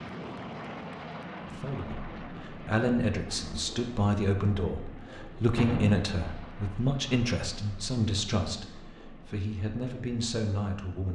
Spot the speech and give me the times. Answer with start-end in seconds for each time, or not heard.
1.6-11.1.